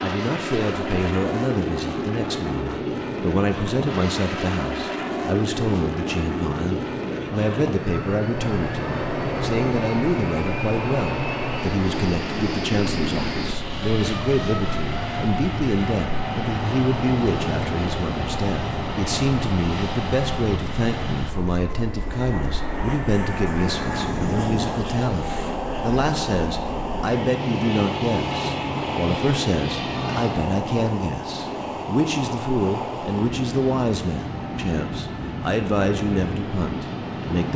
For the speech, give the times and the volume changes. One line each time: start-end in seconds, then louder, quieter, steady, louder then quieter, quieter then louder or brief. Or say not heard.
0.0-37.5 steady.